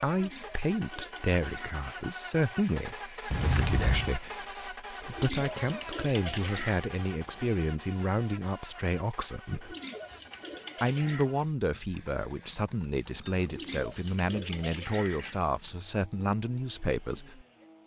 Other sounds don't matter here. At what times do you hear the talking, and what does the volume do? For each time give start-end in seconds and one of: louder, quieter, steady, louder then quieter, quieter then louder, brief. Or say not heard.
0.0-9.8 steady
10.8-17.4 steady.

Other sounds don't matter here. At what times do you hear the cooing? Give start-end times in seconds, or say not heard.
0.1-2.0, 5.0-6.8, 9.5-11.2, 13.3-15.4.